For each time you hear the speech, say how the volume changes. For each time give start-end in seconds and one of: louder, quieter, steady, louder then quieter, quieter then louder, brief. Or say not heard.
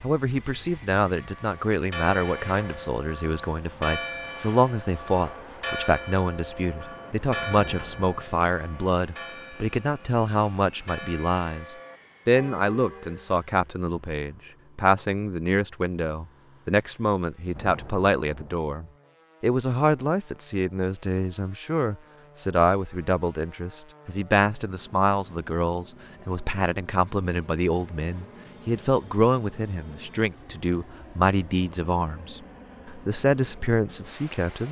0.0-34.6 steady.